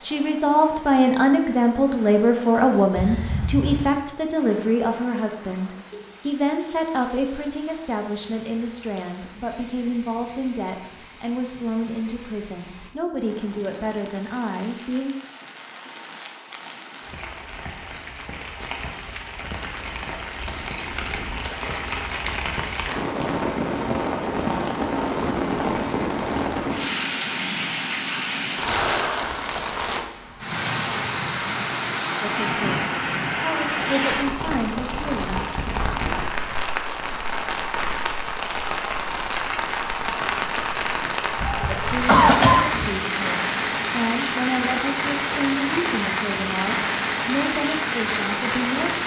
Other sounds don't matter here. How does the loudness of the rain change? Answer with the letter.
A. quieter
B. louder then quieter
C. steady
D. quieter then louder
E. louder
E.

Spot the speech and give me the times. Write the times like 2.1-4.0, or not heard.
0.0-15.2, 32.2-35.5, 41.6-49.0.